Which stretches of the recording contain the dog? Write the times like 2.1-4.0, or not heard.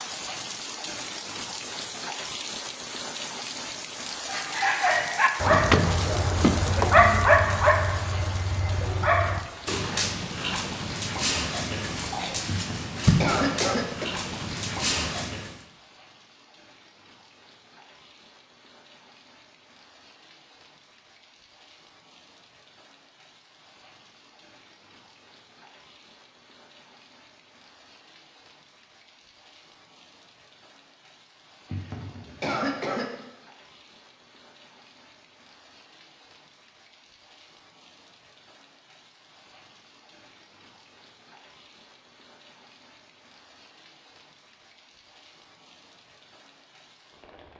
4.2-15.6.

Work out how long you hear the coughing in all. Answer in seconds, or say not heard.
3 s.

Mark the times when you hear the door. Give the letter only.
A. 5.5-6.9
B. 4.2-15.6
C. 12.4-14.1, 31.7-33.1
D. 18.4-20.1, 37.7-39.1
A.